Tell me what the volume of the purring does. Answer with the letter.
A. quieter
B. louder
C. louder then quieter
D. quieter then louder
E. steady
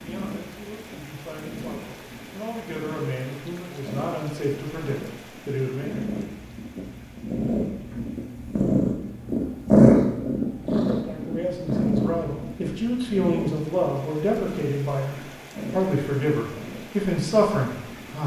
C.